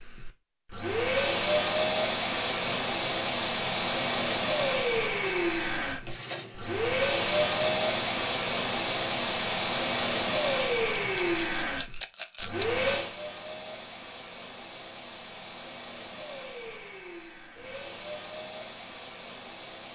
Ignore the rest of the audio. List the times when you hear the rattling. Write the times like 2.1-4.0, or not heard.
10.9-12.8.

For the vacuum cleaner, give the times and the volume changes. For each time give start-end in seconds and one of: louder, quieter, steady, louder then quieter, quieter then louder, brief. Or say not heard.
0.0-19.9 quieter.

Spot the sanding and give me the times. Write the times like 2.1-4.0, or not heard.
2.2-11.5.